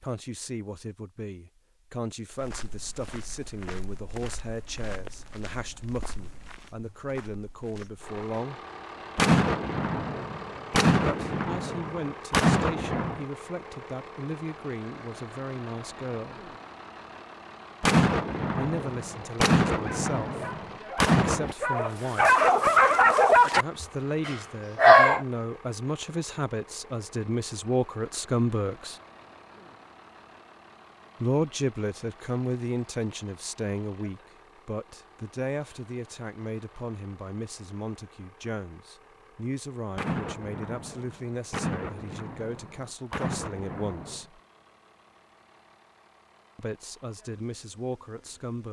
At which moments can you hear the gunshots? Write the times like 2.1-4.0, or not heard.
9.2-13.2, 17.8-21.6, 40.0-44.2.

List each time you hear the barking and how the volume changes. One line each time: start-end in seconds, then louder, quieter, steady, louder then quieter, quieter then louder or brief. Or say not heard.
19.7-25.2 louder then quieter.